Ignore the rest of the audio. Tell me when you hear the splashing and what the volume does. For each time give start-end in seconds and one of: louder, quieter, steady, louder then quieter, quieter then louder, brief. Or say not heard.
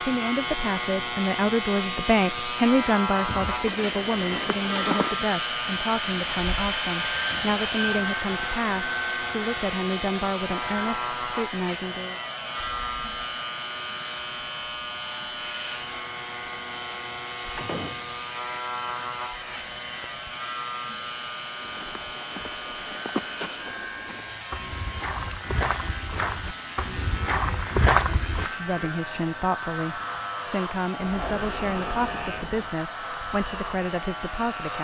not heard.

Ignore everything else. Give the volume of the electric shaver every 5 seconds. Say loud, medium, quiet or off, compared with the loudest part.
loud, loud, loud, medium, medium, medium, medium.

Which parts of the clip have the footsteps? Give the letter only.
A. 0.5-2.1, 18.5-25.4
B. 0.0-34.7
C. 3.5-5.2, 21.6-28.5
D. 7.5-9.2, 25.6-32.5
C.